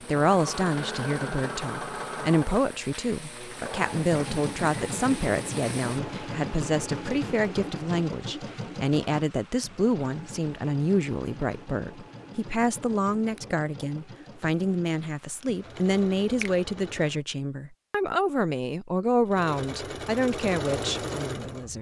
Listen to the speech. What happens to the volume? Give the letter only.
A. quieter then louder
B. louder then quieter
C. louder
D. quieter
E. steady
E.